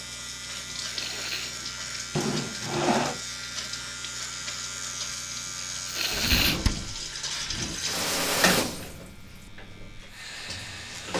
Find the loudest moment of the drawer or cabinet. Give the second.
3 s.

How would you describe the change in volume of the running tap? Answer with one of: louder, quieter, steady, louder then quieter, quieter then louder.
louder then quieter.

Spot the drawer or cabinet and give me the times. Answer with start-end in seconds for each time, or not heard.
2.1-3.2, 6.1-7.8.